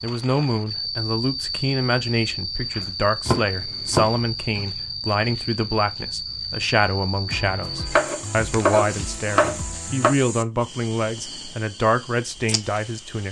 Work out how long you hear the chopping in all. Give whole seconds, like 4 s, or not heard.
4 s.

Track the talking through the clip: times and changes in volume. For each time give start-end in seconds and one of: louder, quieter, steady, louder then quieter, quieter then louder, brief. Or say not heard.
0.0-13.2 steady.